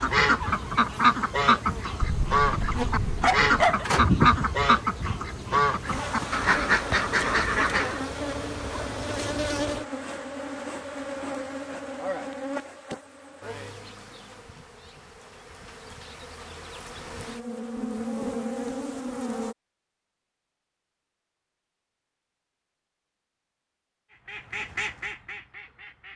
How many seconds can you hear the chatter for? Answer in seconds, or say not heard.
not heard.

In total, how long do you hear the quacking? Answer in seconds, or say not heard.
10 s.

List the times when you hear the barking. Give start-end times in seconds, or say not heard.
2.0-3.9.